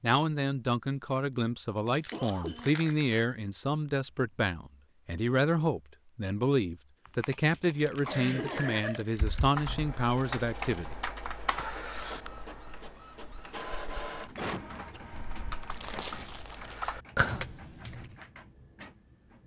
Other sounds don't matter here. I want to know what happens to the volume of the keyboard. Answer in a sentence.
The volume of the keyboard goes down, then up.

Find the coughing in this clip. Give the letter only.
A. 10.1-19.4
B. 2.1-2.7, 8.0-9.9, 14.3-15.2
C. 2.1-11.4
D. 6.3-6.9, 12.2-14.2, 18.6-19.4
B.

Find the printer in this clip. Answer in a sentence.
You can hear the printer from 10.1 to 19.4 s.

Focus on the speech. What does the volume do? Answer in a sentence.
The loudness of the speech stays about the same.